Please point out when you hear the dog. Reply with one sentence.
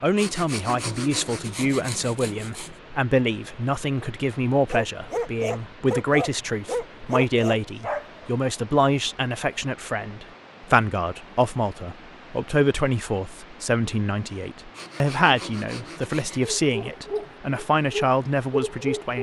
You can hear the dog from 4.7 to 8.3 s and from 16.4 to 19.1 s.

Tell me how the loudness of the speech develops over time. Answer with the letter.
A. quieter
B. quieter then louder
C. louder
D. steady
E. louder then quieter
D.